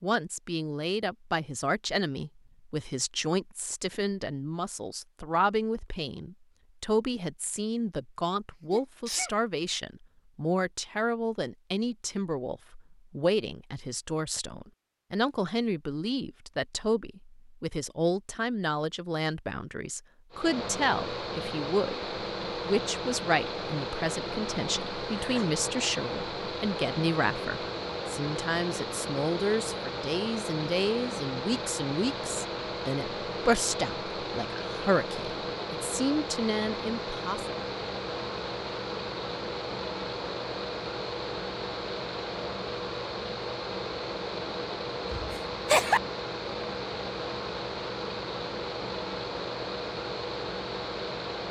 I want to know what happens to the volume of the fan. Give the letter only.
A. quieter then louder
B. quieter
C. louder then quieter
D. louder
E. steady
E.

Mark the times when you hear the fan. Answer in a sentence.
You can hear the fan from 20.3 to 51.4 s.